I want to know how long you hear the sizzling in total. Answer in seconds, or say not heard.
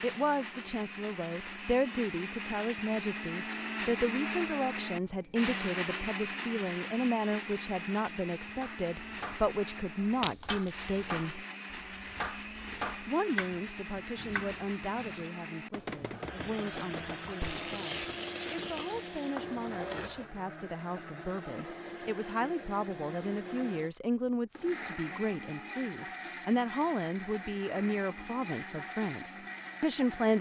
4 s.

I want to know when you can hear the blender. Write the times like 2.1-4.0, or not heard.
0.0-30.3.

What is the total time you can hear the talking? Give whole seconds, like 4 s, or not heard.
29 s.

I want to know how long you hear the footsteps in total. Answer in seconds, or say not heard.
not heard.